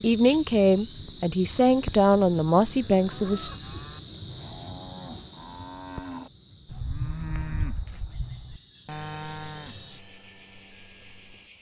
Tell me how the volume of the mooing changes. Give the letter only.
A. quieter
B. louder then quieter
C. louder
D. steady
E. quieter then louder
B.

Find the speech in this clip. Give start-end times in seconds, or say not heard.
0.0-3.5.